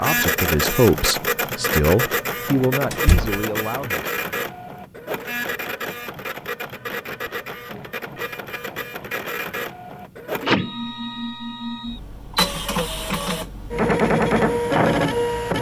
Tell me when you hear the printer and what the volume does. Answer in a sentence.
The printer can be heard from 0.0 to 15.5 s, getting quieter then louder.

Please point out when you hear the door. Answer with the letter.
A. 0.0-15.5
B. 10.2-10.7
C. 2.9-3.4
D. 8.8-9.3
C.